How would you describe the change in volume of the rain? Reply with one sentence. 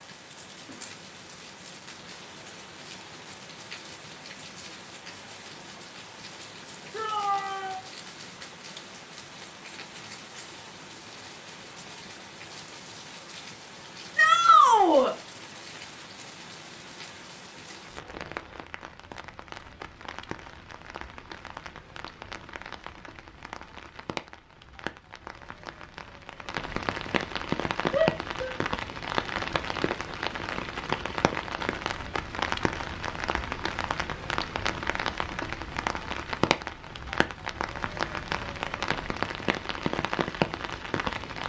The volume of the rain goes up.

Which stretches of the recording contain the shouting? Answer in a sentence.
You can hear the shouting from 6.9 to 7.8 s, from 14.2 to 15.2 s and from 27.9 to 28.5 s.